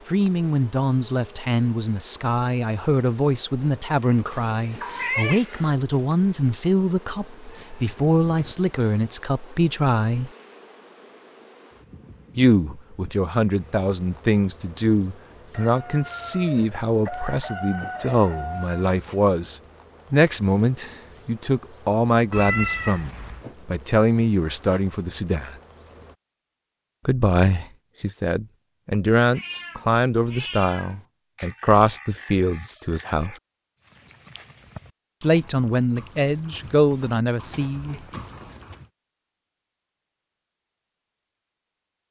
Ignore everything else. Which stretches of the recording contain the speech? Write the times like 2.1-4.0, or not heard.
0.1-10.3, 12.3-25.6, 27.1-33.4, 35.2-38.0.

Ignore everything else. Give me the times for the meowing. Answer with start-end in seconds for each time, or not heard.
4.3-5.8, 22.3-23.4, 29.2-31.0.